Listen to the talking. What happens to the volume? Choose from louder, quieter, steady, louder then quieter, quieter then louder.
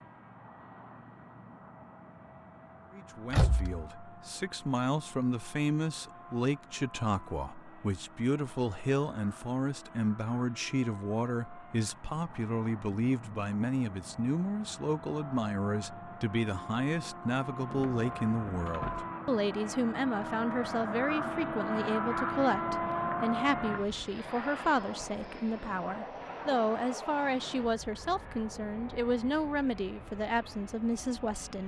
steady.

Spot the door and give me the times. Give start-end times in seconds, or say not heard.
3.3-3.9, 17.6-19.1.